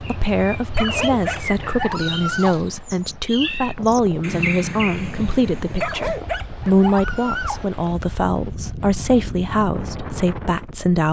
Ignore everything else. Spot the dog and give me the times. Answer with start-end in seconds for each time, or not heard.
0.7-2.6, 5.8-7.7.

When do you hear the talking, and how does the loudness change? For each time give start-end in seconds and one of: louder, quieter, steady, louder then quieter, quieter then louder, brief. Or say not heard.
0.0-11.0 steady.